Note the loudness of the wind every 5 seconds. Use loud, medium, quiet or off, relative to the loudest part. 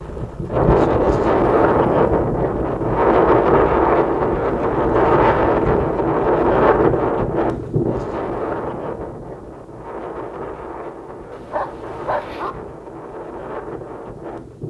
loud, loud, quiet.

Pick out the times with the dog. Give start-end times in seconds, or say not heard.
11.3-12.6.